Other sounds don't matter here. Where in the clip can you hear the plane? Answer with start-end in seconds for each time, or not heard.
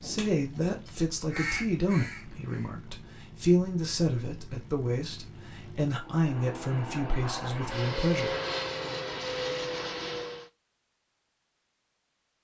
0.0-10.5.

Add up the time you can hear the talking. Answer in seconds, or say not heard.
8 s.